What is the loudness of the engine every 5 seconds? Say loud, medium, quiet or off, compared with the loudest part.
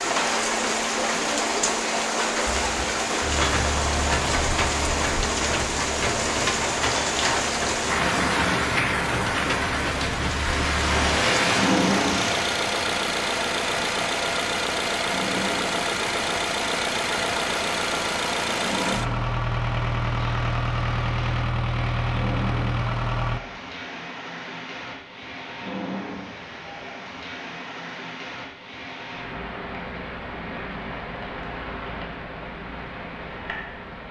medium, medium, loud, loud, loud, off, off.